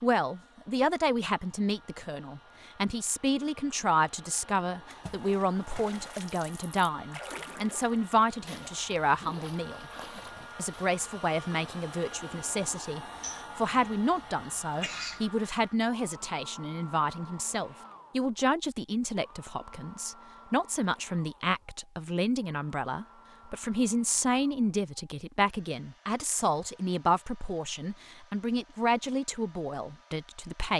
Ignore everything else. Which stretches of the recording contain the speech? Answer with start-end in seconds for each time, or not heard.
0.0-9.9, 10.6-30.7.